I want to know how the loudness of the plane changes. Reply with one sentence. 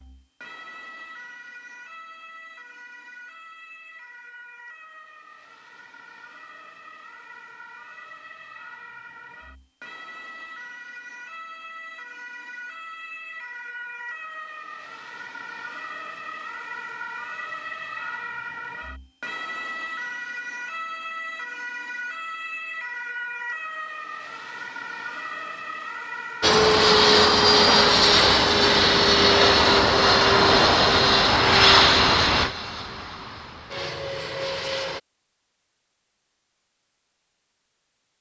The loudness of the plane goes down.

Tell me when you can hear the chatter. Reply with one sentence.
You can't hear the chatter here.